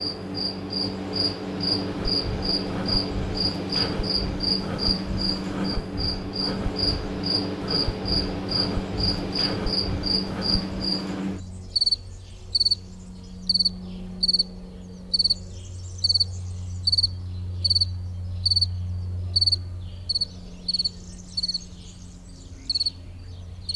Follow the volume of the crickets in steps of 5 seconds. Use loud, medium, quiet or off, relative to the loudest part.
loud, loud, loud, loud, medium.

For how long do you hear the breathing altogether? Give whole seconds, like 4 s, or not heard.
9 s.